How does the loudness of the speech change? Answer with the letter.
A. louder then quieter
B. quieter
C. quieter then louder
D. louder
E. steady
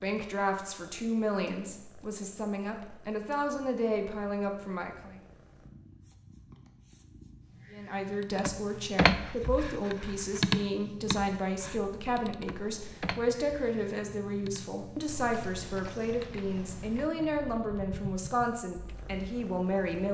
E.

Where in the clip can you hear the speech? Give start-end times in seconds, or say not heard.
0.0-5.2, 7.7-20.0.